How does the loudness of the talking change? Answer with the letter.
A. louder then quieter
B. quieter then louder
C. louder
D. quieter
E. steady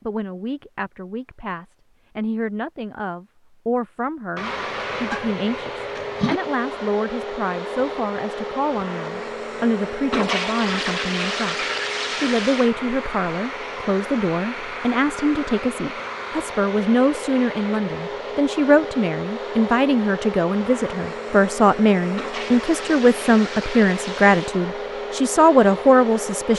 C.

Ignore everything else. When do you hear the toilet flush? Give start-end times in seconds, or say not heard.
4.3-6.4, 10.1-12.8, 22.1-24.6.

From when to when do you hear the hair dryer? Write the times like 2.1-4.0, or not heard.
4.4-26.5.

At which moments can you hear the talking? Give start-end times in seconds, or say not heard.
0.0-26.5.